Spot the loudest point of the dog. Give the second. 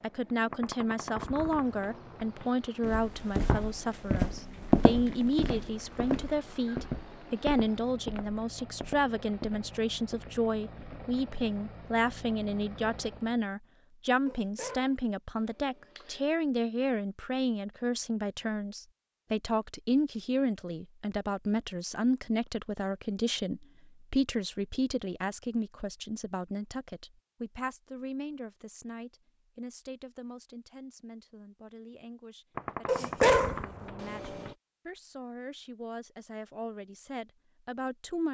33 s.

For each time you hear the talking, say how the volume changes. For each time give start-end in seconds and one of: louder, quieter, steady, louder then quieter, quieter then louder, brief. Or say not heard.
0.0-38.2 quieter.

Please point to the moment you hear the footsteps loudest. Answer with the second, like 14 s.
5 s.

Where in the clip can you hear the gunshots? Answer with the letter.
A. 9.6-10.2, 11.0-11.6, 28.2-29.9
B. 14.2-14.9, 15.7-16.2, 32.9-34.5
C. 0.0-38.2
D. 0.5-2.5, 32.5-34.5
D.